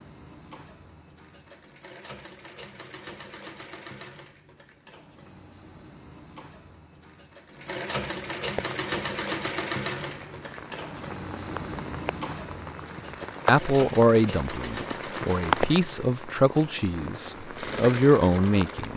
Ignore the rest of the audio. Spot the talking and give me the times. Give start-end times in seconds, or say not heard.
13.4-18.9.